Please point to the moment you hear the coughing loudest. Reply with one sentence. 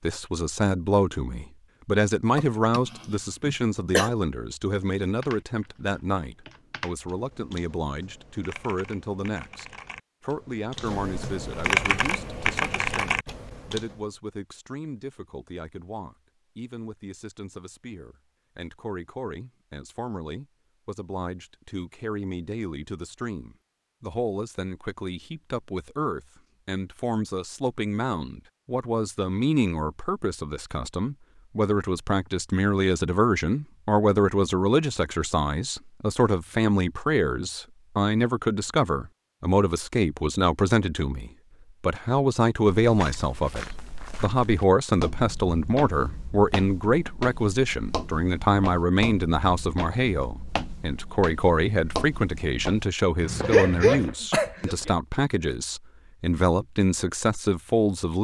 The loudest moment of the coughing is at 54 seconds.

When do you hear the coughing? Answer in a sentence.
You can hear the coughing from 2.4 to 4.1 s and from 53.4 to 54.9 s.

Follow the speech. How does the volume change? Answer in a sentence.
The volume of the speech goes down, then up.